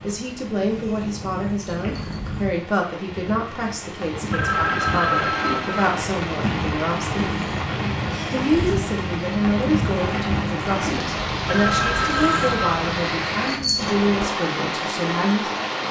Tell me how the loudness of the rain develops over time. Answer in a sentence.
The loudness of the rain goes up.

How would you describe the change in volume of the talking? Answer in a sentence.
The volume of the talking stays about the same.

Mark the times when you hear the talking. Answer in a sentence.
The talking can be heard from 0.0 to 7.3 s and from 8.3 to 15.5 s.